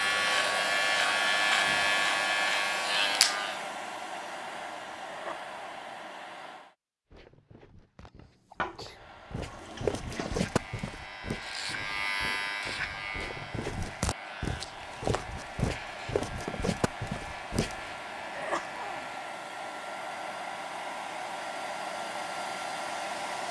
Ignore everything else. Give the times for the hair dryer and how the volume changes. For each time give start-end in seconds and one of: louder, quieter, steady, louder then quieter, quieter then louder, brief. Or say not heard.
0.0-6.8 quieter
8.8-23.4 louder.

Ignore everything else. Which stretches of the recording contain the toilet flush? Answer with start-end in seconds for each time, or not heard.
8.6-10.6.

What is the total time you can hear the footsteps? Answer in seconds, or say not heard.
11 s.